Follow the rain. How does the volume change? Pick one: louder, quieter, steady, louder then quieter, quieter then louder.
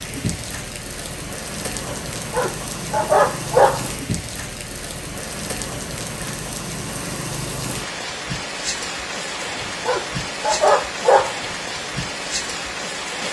steady.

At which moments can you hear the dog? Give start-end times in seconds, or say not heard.
1.9-3.9, 9.4-11.3.